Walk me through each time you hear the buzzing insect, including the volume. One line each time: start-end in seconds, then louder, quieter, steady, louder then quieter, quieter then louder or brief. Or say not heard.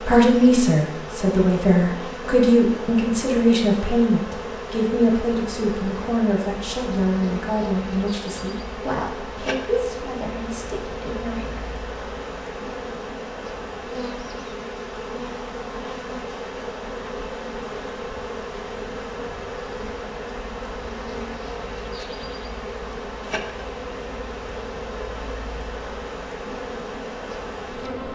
0.0-28.1 steady.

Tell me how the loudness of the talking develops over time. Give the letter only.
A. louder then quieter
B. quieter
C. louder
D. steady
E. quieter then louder
B.